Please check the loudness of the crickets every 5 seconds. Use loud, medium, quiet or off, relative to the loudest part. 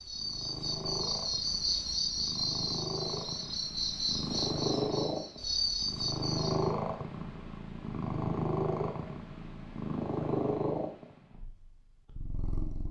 loud, loud, off.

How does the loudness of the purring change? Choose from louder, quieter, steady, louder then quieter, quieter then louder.
louder.